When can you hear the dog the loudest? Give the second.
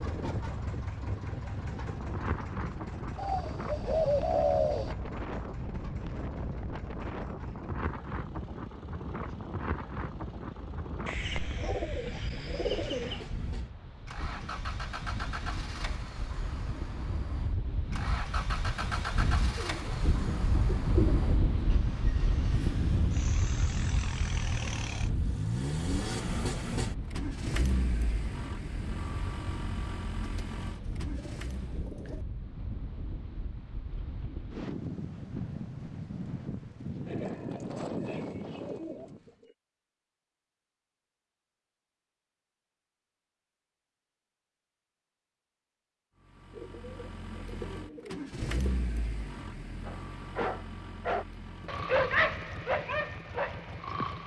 52 s.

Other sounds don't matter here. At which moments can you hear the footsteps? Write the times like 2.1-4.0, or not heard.
not heard.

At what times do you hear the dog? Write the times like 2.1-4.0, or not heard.
49.9-54.2.